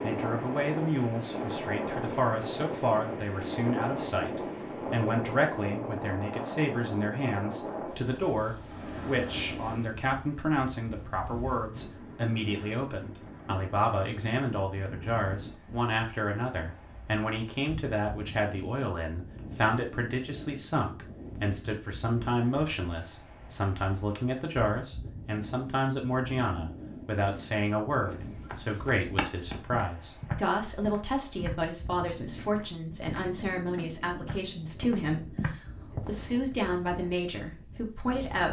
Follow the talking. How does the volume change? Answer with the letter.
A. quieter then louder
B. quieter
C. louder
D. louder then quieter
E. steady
E.